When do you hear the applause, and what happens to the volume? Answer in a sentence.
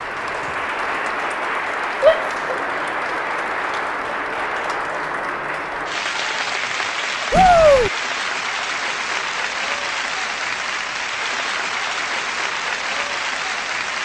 You can hear the applause from 0.0 to 14.0 s, at a steady volume.